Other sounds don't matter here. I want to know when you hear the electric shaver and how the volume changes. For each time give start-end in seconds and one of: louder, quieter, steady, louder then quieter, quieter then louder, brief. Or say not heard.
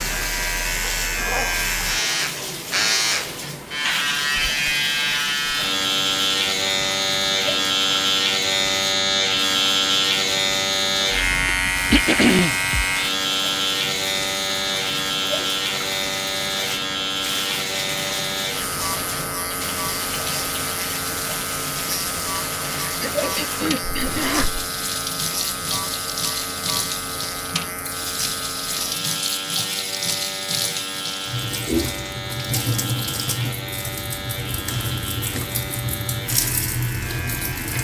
0.0-37.7 quieter.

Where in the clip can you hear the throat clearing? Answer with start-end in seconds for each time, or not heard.
11.4-12.6, 23.0-24.5.